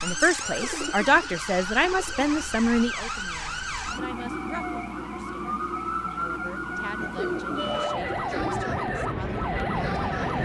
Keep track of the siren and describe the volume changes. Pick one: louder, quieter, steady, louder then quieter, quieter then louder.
steady.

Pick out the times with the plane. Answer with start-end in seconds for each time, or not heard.
7.5-10.4.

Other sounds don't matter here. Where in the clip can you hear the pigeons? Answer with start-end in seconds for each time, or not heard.
0.6-2.5, 7.0-8.7.